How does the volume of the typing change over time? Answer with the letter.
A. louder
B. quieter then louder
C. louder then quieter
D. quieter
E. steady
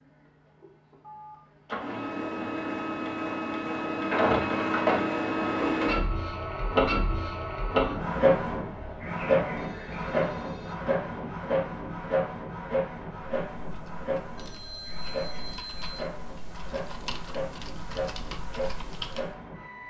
A.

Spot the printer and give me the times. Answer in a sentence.
The printer can be heard from 0.0 to 19.8 s.